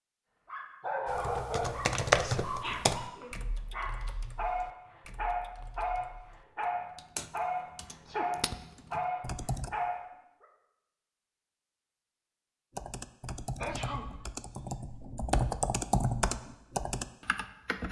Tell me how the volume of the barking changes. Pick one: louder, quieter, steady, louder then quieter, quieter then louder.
steady.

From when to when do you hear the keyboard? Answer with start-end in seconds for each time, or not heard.
1.1-9.7, 12.8-17.8.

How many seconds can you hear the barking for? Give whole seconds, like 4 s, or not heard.
10 s.